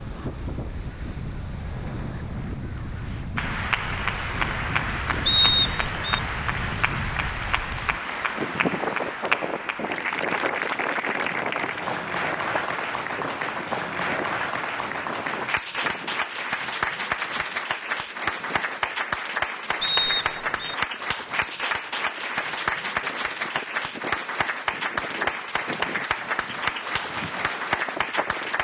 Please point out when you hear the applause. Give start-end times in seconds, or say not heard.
3.4-28.5.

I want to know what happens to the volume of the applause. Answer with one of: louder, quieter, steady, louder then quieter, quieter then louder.
steady.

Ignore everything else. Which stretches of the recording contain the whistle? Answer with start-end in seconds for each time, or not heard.
5.2-6.2, 19.8-20.8.